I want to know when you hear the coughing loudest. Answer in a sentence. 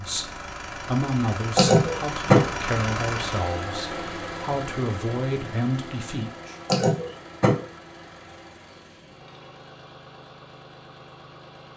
The loudest moment of the coughing is at 2 seconds.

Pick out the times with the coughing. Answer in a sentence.
You can hear the coughing from 1.6 to 2.5 s and from 6.7 to 7.7 s.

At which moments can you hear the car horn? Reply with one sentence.
You can't hear the car horn here.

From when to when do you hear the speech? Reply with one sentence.
The speech can be heard from 0.0 to 6.5 s.